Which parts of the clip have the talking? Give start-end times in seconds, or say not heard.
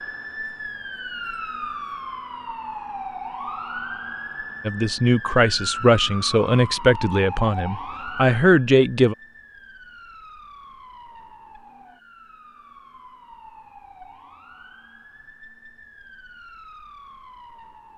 4.7-9.2.